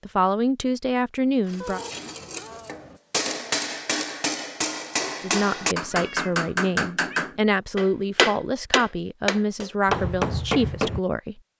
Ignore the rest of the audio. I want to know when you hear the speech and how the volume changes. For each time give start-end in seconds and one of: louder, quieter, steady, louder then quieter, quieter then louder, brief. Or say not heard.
0.1-1.8 brief
5.2-11.4 steady.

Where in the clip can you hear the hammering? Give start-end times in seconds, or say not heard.
1.5-11.0.